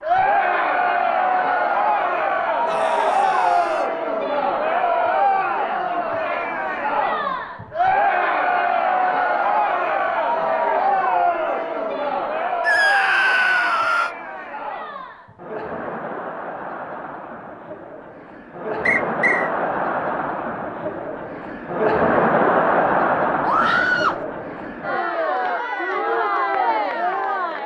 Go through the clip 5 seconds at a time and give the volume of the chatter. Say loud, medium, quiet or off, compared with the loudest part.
loud, loud, loud, medium, loud, loud.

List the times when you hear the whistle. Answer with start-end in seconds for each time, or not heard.
18.9-19.5.